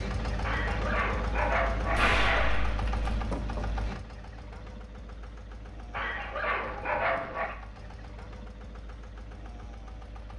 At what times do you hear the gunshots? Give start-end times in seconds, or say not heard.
1.9-3.1.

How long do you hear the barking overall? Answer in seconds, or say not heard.
4 s.